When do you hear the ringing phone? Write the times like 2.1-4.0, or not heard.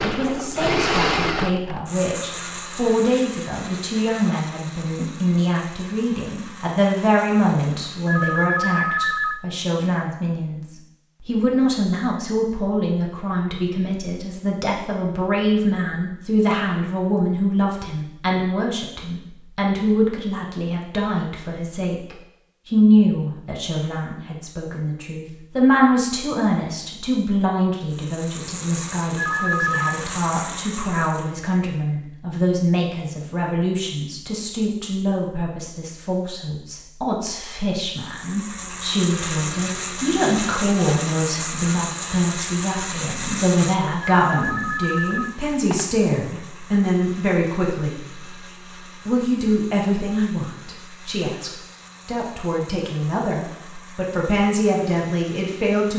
8.1-9.4, 29.1-29.9, 44.2-45.9.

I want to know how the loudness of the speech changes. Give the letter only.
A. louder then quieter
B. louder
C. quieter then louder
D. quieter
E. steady
E.